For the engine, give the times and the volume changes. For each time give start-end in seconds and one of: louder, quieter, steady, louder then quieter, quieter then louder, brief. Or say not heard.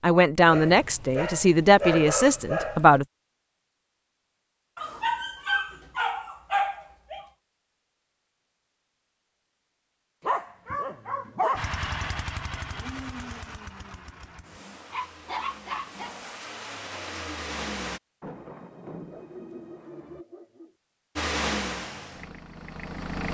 11.6-18.0 quieter then louder
21.1-23.2 brief.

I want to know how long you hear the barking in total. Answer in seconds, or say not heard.
10 s.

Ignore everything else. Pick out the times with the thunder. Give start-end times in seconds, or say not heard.
18.2-20.2.